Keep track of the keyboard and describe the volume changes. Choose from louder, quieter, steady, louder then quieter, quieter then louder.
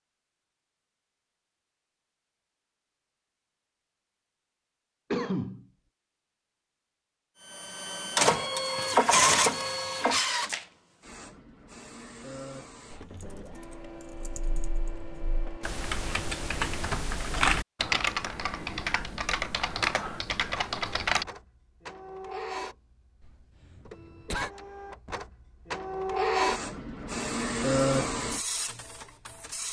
louder.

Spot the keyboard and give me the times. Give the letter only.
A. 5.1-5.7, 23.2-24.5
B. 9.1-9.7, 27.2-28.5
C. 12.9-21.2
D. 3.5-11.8
C.